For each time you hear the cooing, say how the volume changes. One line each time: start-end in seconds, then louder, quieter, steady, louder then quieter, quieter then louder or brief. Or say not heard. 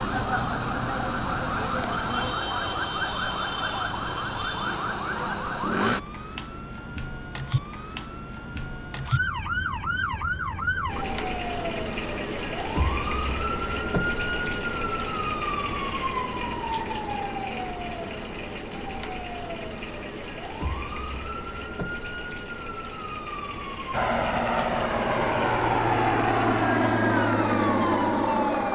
not heard.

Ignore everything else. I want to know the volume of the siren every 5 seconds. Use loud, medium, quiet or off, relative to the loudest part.
loud, loud, loud, loud, medium, loud.